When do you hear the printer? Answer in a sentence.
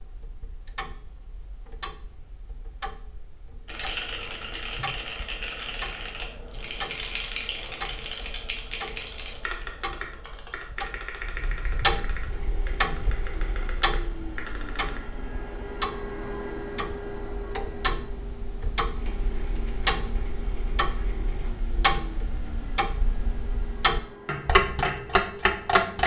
You can hear the printer from 12.2 to 26.0 s.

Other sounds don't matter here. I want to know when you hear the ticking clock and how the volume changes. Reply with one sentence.
The ticking clock can be heard from 0.0 to 26.0 s, getting louder.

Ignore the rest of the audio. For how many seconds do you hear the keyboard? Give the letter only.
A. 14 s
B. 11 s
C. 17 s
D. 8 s
B.